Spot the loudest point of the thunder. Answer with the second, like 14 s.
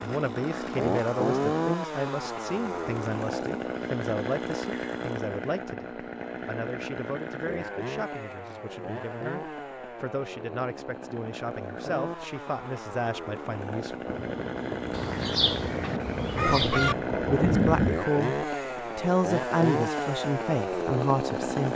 18 s.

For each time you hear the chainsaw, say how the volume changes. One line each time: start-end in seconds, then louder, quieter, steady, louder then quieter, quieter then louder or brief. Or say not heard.
0.0-21.7 quieter then louder.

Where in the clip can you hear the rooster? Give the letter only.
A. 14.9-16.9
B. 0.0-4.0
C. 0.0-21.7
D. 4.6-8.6
A.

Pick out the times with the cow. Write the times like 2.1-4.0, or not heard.
not heard.